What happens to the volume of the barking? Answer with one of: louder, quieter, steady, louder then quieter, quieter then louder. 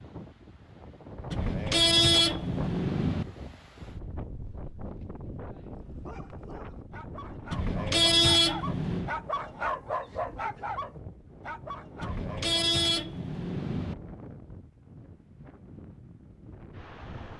louder then quieter.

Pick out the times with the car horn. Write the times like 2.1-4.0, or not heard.
1.3-3.2, 7.5-9.2, 12.0-13.9.